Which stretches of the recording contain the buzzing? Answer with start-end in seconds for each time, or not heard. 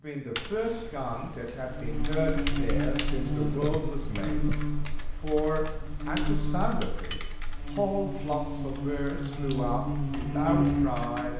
1.6-11.3.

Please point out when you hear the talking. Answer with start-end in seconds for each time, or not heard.
0.0-11.3.